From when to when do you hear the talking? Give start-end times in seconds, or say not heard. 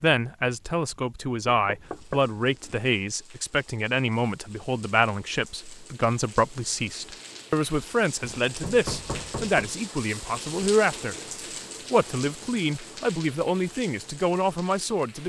0.0-11.2, 11.9-15.2.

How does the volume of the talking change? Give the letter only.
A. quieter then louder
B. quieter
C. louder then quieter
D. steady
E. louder
D.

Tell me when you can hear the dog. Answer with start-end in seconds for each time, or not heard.
not heard.